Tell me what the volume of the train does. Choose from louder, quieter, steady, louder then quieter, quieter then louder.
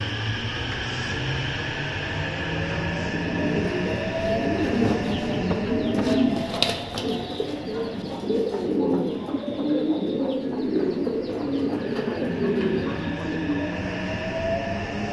quieter then louder.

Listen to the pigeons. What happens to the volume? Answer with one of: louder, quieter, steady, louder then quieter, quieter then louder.
steady.